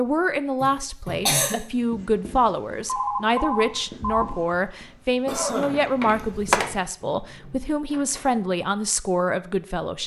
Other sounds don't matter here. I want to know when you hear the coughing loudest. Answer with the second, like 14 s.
1 s.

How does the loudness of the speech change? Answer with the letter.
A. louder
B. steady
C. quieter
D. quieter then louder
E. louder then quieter
B.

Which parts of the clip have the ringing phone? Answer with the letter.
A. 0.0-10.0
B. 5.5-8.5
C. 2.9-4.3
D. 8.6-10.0
C.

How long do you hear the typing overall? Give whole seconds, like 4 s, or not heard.
3 s.